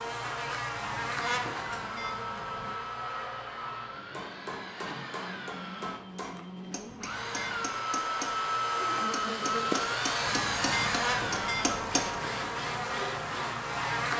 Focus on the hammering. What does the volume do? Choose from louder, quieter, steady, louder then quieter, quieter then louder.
louder.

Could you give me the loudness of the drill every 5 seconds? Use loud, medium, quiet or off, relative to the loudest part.
medium, loud, loud.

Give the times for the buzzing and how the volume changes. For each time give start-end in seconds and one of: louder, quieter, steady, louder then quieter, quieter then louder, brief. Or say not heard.
0.0-14.1 quieter then louder.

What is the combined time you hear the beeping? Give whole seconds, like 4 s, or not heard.
5 s.